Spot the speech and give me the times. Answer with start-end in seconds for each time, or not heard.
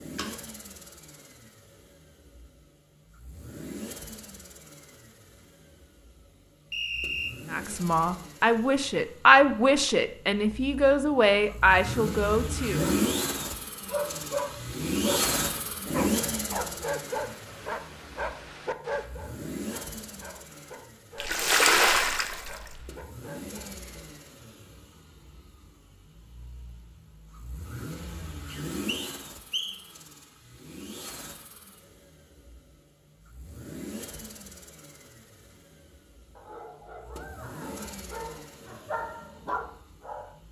7.5-12.8.